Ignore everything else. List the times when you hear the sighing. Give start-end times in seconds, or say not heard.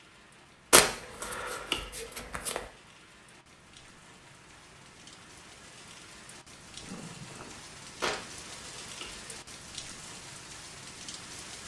1.2-1.9, 6.8-7.6.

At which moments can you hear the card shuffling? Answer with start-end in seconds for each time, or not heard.
0.7-2.6, 8.0-9.5.